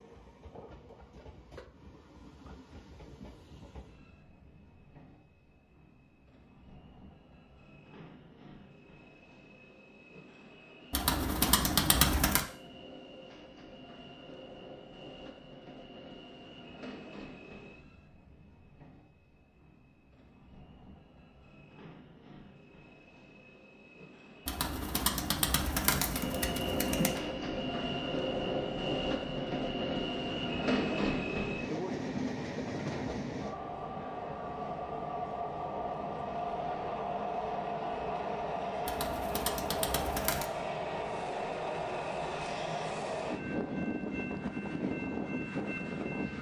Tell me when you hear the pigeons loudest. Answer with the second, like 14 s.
12 s.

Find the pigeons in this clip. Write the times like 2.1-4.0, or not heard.
10.9-12.4, 24.4-27.2, 38.9-40.5.